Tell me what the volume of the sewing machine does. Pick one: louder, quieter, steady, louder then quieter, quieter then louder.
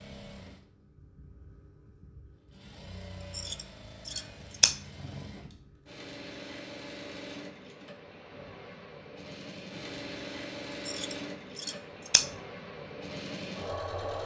louder.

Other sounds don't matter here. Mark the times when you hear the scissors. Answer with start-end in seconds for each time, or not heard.
3.3-4.8, 10.8-12.2.